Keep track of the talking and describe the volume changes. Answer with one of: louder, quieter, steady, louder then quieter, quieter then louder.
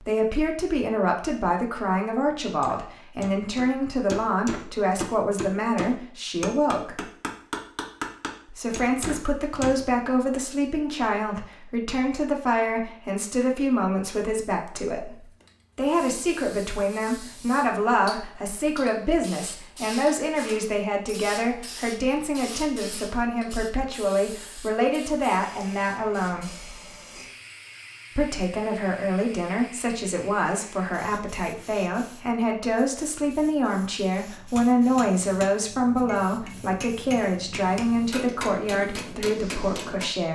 steady.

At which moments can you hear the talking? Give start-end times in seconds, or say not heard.
0.0-7.0, 8.4-26.5, 28.1-40.3.